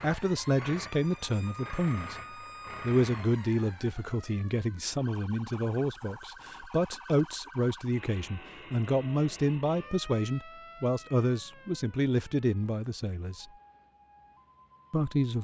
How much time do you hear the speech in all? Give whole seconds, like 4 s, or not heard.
13 s.